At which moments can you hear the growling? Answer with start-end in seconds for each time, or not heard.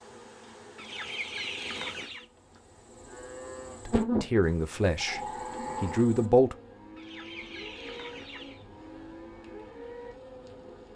5.0-6.1.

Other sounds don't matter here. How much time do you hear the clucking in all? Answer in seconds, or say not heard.
3 s.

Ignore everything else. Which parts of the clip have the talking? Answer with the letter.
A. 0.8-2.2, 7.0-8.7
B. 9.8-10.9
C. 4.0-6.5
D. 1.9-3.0
C.